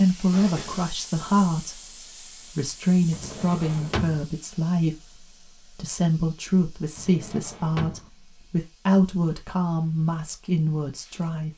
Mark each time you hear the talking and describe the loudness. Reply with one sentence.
You can hear the talking from 0.0 to 11.5 s, at a steady volume.